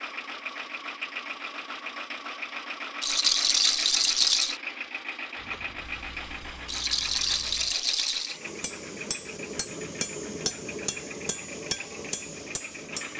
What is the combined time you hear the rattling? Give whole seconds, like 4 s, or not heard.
3 s.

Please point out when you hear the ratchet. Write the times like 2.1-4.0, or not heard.
not heard.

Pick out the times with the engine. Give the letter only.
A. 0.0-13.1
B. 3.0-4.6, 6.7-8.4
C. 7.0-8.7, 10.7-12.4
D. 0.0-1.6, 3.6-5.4
A.